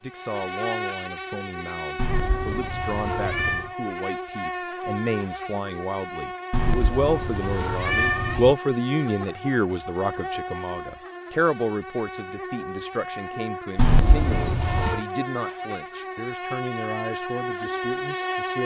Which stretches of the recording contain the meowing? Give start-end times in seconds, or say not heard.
1.9-3.7, 6.5-8.6, 13.8-15.0.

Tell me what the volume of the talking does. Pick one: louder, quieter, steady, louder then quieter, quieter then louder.
louder then quieter.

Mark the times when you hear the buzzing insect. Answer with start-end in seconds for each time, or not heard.
0.0-18.6.